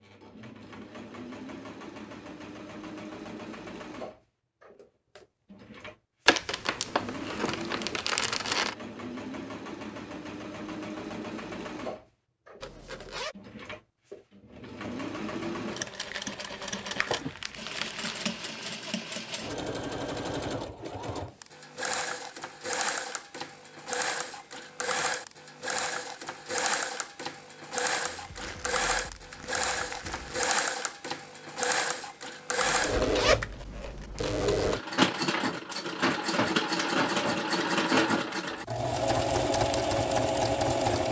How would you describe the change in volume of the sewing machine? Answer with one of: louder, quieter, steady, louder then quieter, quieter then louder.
louder.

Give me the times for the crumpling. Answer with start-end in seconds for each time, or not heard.
6.2-8.8, 15.9-18.4, 27.9-30.6.